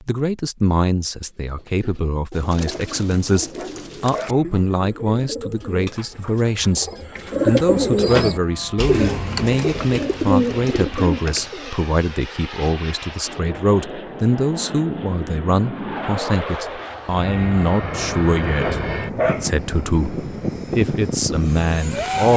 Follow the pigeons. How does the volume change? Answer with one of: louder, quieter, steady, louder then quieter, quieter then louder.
louder.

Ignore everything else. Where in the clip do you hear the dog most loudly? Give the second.
19 s.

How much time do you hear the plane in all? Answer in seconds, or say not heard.
14 s.